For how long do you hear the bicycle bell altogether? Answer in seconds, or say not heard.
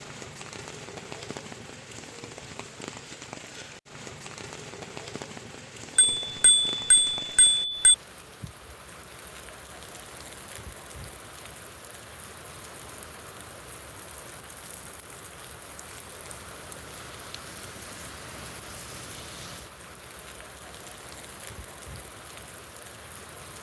2 s.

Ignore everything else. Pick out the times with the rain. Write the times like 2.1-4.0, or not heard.
0.0-23.5.